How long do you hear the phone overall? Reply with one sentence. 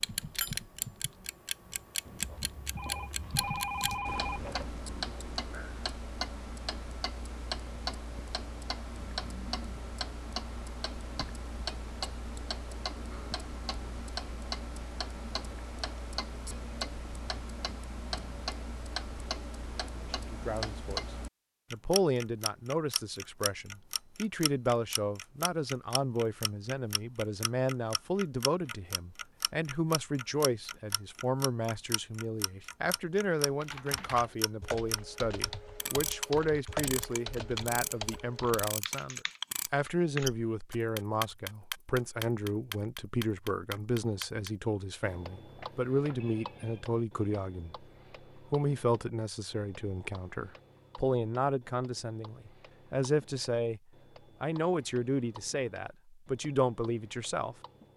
The phone can be heard for 4 seconds in total.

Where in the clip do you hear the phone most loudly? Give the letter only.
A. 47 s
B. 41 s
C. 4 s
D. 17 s
C.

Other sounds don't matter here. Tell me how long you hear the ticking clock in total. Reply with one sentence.
You can hear the ticking clock for 58 seconds altogether.